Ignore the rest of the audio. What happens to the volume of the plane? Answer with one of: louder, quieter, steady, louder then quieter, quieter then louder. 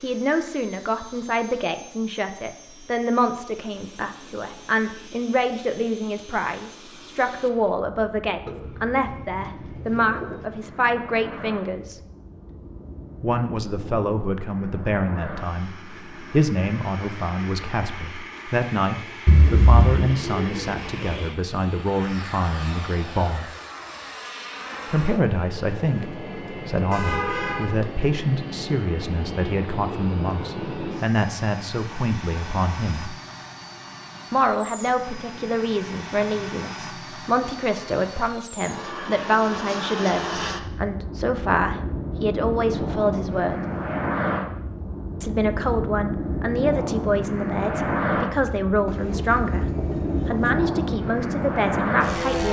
louder.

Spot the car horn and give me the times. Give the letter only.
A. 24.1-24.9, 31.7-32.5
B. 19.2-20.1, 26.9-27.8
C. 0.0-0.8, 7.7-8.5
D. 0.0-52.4
B.